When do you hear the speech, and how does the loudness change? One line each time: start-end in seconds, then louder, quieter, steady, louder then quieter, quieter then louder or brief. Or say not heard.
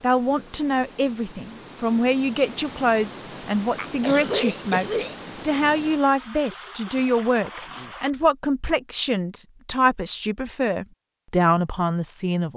0.0-12.5 steady.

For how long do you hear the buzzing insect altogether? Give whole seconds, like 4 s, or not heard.
not heard.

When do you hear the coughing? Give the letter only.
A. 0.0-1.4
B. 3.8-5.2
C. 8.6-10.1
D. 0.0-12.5
B.